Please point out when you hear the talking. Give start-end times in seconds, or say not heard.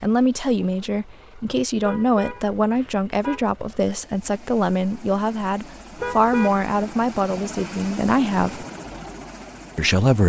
0.0-8.7, 9.8-10.2.